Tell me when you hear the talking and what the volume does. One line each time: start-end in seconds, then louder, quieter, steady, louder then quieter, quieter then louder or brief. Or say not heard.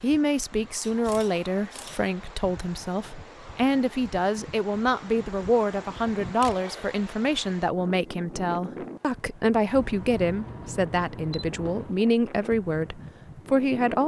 0.0-14.0 steady.